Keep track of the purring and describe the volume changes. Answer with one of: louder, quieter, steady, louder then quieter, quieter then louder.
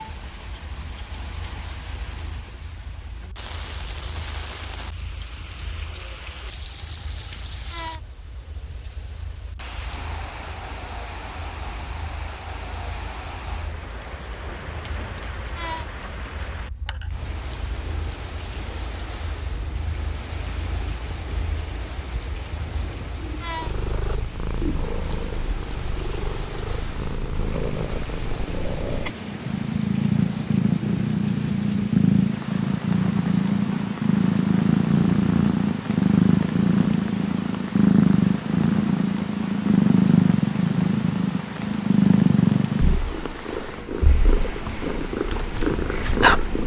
louder.